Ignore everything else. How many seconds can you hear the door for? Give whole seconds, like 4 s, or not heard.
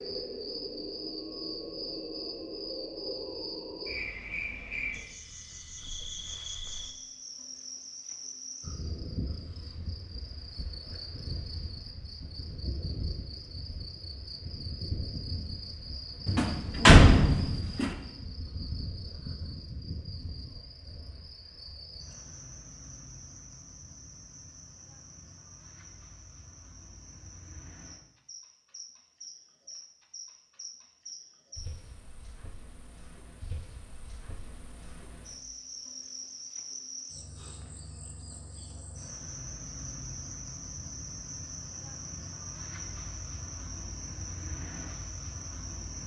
2 s.